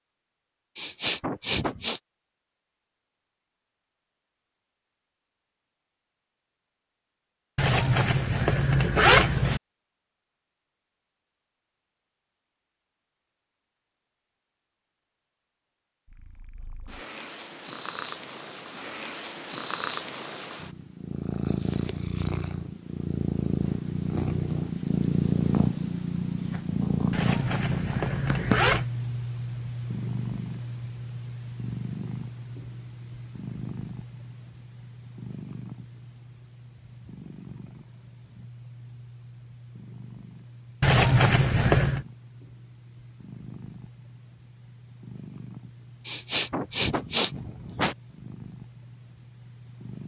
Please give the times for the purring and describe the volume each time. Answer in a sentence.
The purring can be heard from 16.1 to 50.0 s, getting louder then quieter.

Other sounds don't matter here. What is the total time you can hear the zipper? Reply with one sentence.
You can hear the zipper for 5 seconds altogether.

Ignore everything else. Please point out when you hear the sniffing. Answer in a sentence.
The sniffing can be heard from 0.8 to 2.0 s and from 46.0 to 48.0 s.